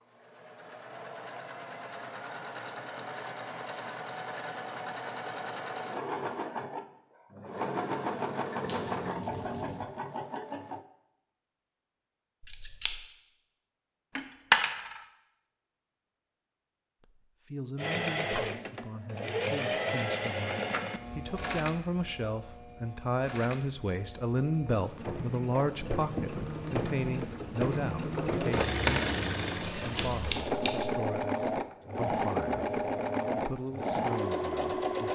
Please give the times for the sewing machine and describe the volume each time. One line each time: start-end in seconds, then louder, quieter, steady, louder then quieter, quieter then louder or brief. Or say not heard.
0.0-10.8 louder
17.8-35.1 quieter then louder.